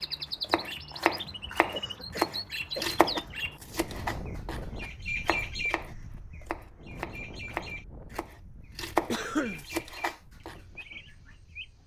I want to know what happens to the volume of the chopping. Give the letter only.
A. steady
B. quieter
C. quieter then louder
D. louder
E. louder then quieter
C.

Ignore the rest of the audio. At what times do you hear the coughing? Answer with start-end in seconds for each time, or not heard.
1.7-3.4, 9.1-9.7.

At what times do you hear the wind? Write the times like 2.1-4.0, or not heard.
3.5-11.8.